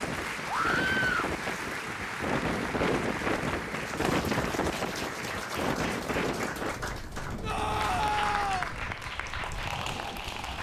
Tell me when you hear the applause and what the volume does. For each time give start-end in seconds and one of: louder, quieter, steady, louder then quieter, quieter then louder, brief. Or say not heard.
0.0-10.5 steady.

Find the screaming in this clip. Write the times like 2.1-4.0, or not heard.
0.5-1.3, 7.4-8.7.